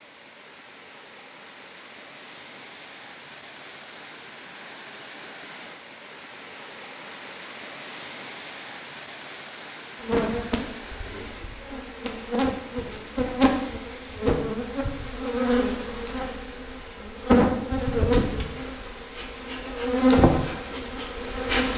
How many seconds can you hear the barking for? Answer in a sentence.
The barking can't be heard in this clip.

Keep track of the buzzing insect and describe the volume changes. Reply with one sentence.
The loudness of the buzzing insect goes up.